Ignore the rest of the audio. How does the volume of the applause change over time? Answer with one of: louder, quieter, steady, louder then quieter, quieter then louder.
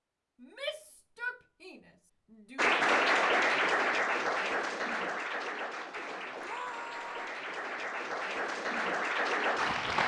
quieter then louder.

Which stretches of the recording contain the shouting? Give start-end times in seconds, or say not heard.
0.4-2.8, 6.4-7.3.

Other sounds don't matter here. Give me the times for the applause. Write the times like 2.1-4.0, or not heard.
2.5-10.0.